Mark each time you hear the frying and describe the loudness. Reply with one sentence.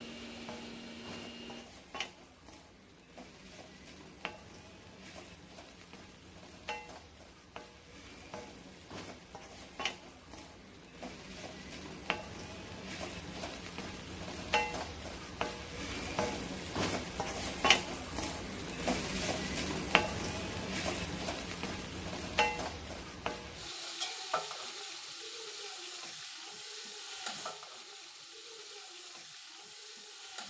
The frying can be heard from 0.0 to 30.4 s, getting louder then quieter.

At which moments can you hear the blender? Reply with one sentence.
The blender can be heard from 0.0 to 1.7 s.